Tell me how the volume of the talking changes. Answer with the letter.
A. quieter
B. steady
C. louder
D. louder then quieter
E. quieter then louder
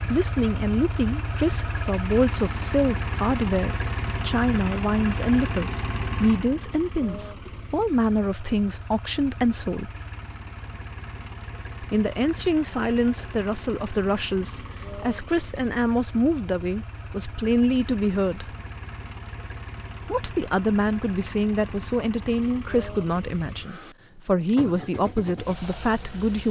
B.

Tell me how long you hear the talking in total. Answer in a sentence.
The talking can be heard for 23 seconds in total.